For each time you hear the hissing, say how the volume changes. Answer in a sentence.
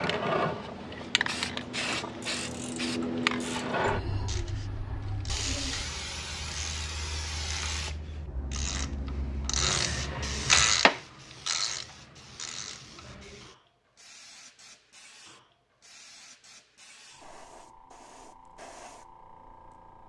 The hissing can be heard from 0.0 to 20.0 s, getting quieter.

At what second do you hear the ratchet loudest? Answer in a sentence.
The loudest moment of the ratchet is at 11 seconds.